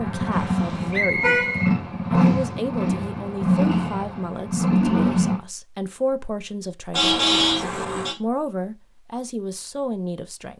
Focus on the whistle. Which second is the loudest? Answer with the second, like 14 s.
1 s.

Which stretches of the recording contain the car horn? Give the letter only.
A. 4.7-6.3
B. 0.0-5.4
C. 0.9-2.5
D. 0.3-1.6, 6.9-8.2
D.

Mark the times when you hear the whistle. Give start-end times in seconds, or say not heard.
0.9-2.5.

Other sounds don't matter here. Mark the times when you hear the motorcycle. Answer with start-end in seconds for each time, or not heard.
0.0-5.4.